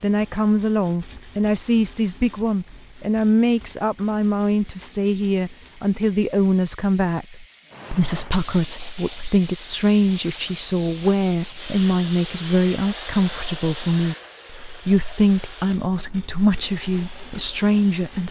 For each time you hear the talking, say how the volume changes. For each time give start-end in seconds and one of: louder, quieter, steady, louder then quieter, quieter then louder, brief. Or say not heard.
0.0-18.2 steady.